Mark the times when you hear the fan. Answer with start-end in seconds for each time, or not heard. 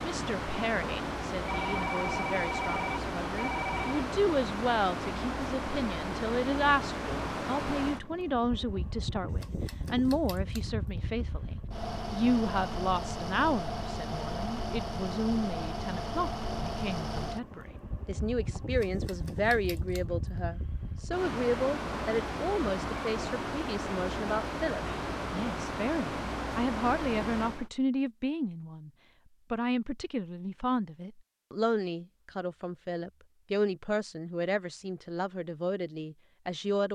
0.0-27.7.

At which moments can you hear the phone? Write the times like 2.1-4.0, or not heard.
1.4-4.0.